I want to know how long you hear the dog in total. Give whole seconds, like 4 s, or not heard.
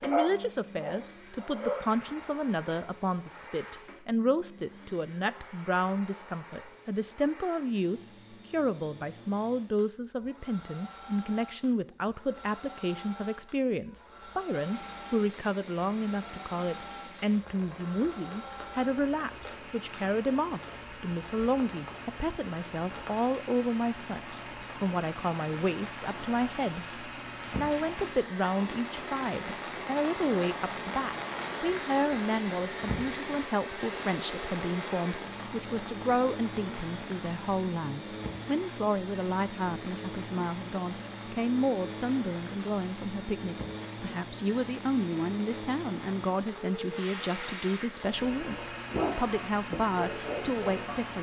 5 s.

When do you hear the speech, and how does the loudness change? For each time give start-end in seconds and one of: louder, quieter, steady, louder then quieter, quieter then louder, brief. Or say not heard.
0.0-51.1 steady.